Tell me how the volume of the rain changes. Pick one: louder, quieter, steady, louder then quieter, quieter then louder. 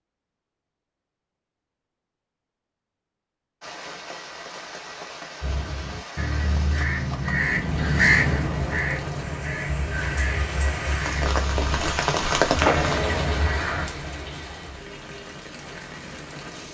louder then quieter.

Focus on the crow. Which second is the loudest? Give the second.
8 s.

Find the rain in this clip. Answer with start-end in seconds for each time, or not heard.
3.6-16.6.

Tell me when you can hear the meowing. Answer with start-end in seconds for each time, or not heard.
12.6-13.6.